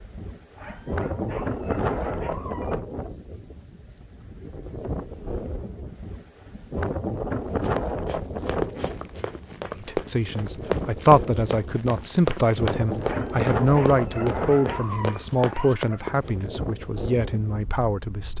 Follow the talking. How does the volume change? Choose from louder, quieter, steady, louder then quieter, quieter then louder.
quieter.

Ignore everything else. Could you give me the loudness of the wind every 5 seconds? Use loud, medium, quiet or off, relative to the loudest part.
loud, loud, loud, medium.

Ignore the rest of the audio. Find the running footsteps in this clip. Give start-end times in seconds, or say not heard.
7.5-16.3.